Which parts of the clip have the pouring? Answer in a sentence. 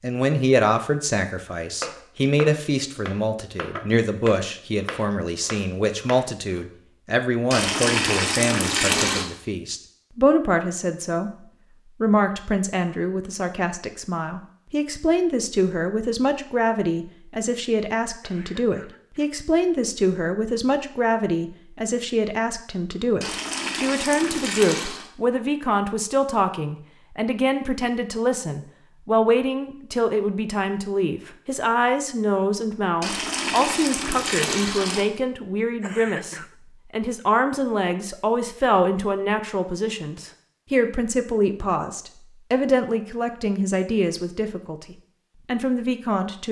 You can hear the pouring from 7.5 to 9.2 s, from 23.2 to 25.1 s and from 33.0 to 35.0 s.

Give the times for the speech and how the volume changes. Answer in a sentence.
The speech can be heard from 0.0 to 46.4 s, at a steady volume.